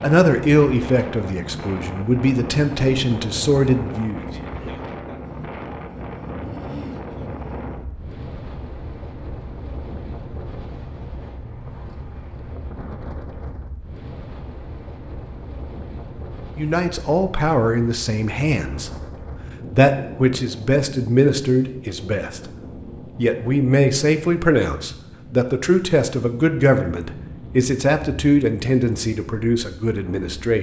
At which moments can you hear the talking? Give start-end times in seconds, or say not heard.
0.0-4.2, 16.6-18.9, 19.7-22.4, 23.1-30.5.